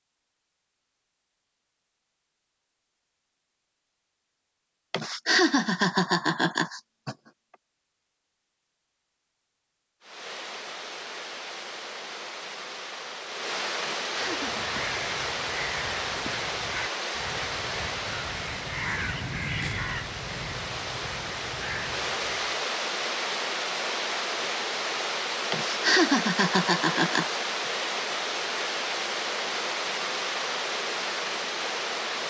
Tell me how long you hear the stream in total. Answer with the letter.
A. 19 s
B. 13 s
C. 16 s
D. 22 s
D.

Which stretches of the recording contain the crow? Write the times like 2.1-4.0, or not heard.
14.2-22.6.